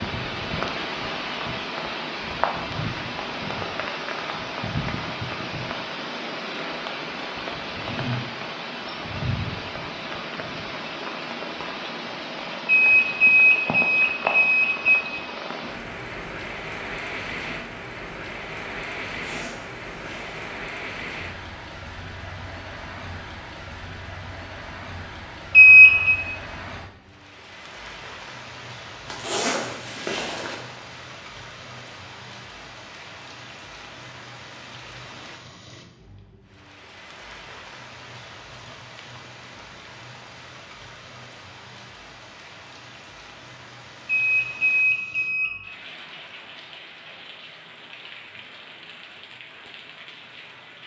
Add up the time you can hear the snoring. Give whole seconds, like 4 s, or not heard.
not heard.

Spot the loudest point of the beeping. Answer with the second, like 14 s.
26 s.